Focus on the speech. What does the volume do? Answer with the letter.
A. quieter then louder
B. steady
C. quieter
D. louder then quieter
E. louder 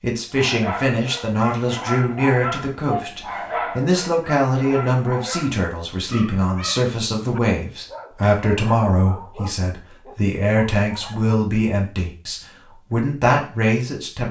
B.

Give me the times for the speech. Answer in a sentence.
The speech can be heard from 0.0 to 14.2 s.